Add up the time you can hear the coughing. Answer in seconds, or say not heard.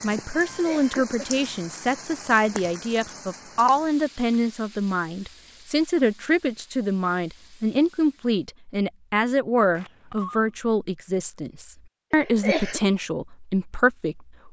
2 s.